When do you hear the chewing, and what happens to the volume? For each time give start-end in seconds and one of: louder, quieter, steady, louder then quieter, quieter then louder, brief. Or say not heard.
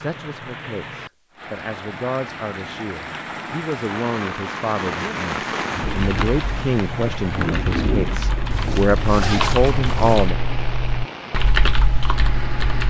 not heard.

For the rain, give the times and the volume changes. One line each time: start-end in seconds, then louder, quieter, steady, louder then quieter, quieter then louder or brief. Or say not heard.
0.0-12.8 louder then quieter.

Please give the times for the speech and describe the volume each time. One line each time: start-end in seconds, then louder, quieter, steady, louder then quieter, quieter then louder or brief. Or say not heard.
0.0-10.3 louder.